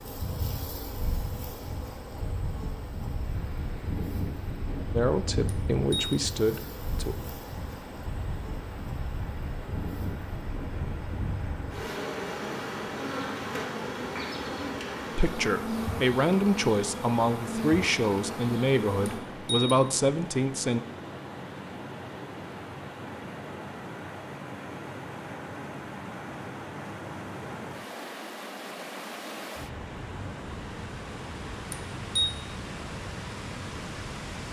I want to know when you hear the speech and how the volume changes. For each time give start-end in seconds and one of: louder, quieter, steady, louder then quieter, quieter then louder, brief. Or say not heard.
4.9-7.2 brief
15.2-20.8 steady.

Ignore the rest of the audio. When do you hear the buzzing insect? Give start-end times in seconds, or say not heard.
0.0-19.2.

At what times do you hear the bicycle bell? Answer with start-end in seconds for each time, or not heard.
5.5-6.2, 19.1-19.8, 31.7-32.3.